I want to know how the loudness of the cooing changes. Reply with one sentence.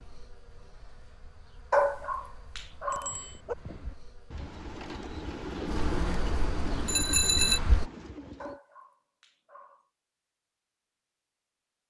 The volume of the cooing goes up, then down.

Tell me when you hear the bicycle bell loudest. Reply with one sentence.
The volume of the bicycle bell peaks at 7 seconds.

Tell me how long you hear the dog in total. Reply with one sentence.
The dog can be heard for 3 seconds in total.